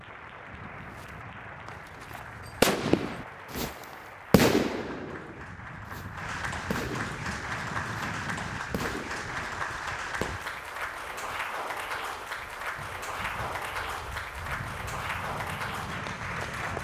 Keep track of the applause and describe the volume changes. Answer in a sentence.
The loudness of the applause goes up.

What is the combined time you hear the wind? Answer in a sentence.
The wind can be heard for 17 seconds in total.